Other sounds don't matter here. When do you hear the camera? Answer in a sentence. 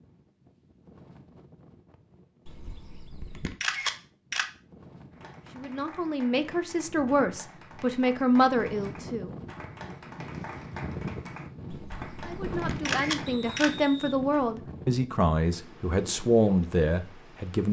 You can hear the camera from 2.5 to 4.5 s and from 11.7 to 13.7 s.